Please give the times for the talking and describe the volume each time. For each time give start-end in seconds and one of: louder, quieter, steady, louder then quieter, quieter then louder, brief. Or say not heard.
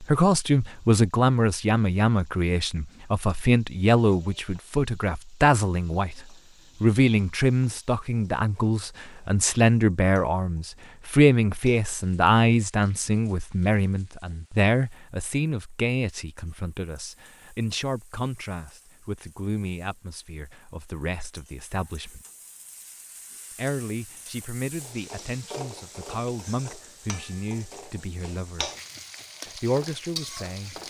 0.0-22.2 quieter
23.6-28.7 steady
29.4-30.8 brief.